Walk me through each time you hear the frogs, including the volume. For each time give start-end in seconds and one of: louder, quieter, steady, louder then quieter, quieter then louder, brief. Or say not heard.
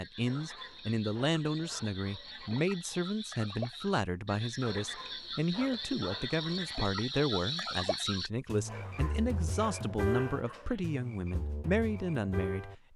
0.0-12.8 louder.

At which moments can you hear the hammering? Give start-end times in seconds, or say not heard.
not heard.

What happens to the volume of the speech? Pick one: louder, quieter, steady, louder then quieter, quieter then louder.
steady.